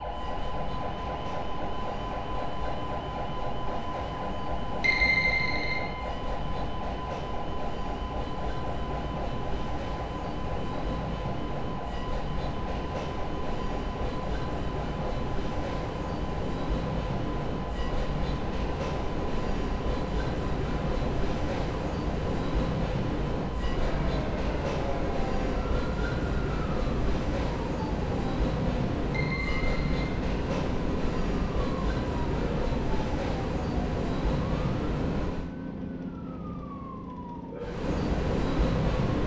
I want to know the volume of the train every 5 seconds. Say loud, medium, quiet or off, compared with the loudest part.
medium, medium, medium, loud, loud, loud, loud, loud.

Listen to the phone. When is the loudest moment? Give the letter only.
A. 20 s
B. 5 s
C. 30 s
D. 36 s
B.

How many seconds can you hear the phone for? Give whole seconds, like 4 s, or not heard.
2 s.